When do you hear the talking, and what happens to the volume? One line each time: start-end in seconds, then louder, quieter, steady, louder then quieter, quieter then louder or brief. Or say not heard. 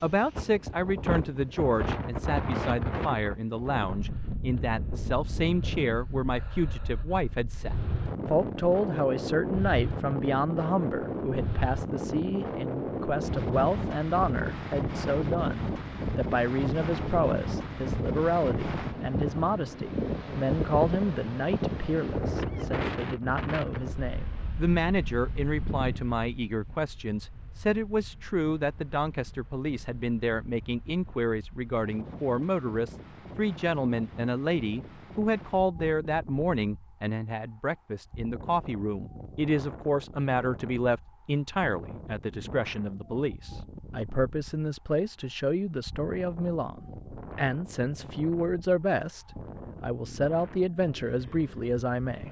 0.0-52.2 steady.